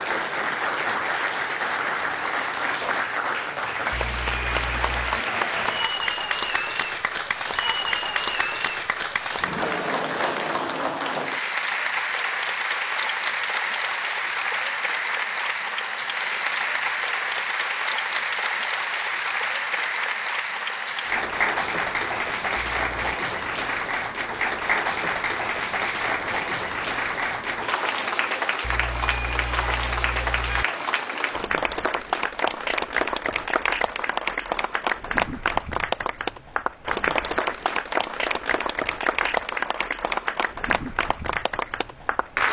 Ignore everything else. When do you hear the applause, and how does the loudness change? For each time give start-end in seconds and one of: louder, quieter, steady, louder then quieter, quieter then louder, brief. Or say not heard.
0.0-42.4 steady.